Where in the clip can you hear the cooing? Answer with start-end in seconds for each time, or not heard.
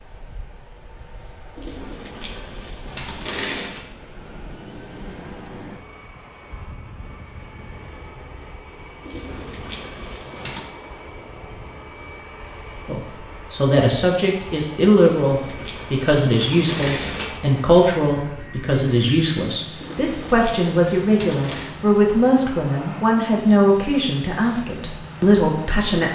1.6-3.9, 9.0-10.7, 15.0-17.4, 19.8-21.7.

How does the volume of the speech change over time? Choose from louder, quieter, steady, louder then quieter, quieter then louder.
steady.